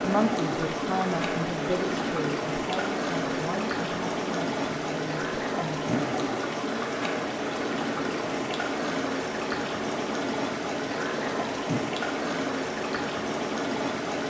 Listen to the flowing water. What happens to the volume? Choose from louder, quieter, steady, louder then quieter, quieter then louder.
steady.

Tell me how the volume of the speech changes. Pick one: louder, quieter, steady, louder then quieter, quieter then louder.
quieter.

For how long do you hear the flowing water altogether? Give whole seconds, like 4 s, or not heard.
14 s.